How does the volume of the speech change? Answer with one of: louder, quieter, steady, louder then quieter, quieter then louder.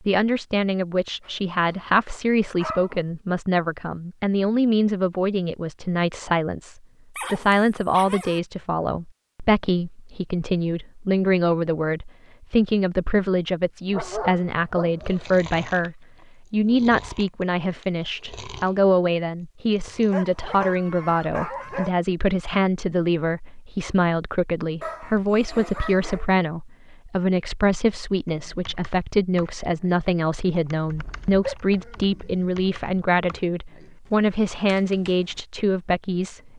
steady.